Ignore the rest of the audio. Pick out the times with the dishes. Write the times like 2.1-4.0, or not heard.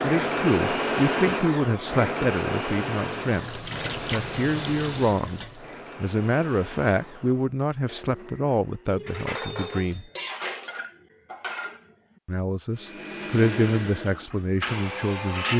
9.1-12.2, 14.1-15.5.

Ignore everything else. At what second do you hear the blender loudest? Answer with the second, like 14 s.
1 s.